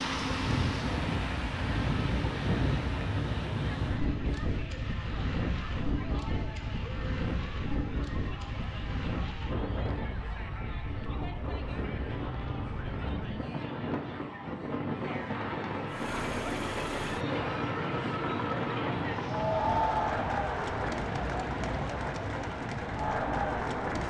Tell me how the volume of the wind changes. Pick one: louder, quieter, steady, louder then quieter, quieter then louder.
quieter.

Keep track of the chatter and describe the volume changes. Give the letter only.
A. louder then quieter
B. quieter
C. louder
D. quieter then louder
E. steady
C.